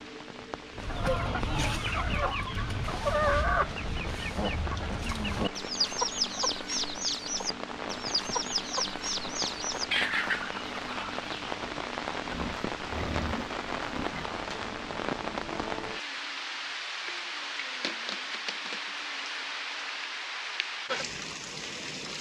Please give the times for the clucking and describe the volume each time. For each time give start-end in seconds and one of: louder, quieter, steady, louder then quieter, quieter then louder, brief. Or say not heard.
0.8-11.5 steady.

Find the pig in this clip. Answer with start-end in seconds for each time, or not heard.
12.2-14.3.